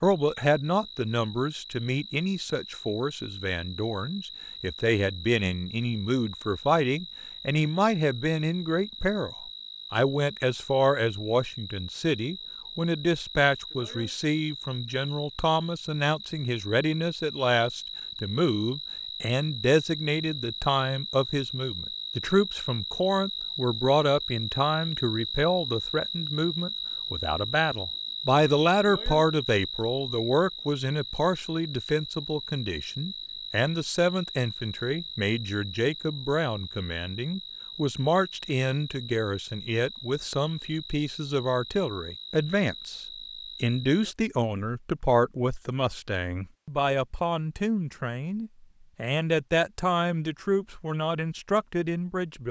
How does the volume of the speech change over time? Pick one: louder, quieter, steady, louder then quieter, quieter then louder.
steady.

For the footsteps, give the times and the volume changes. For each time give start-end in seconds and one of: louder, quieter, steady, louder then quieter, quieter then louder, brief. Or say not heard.
not heard.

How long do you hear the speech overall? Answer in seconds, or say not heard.
52 s.